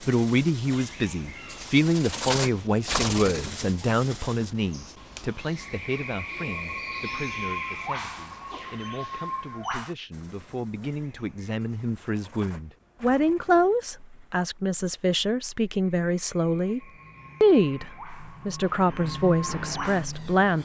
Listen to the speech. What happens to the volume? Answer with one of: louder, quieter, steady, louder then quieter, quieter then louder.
quieter then louder.